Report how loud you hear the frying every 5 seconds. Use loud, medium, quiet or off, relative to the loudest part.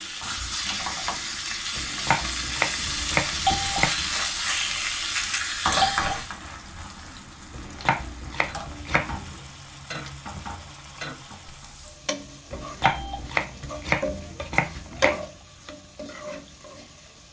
loud, loud, medium, medium.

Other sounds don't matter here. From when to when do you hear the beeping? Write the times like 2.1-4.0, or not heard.
3.5-3.9, 5.8-6.2, 12.8-13.2.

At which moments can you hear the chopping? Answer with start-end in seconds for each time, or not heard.
1.8-4.0, 7.5-9.4, 12.5-15.2.